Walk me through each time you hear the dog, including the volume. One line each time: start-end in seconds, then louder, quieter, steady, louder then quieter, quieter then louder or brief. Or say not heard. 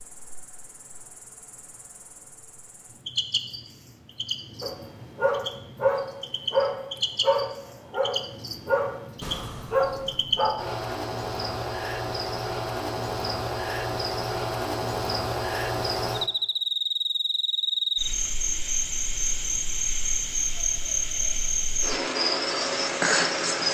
4.6-10.7 steady.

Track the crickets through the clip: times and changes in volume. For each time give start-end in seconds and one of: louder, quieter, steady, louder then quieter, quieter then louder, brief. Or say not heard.
0.0-23.6 louder.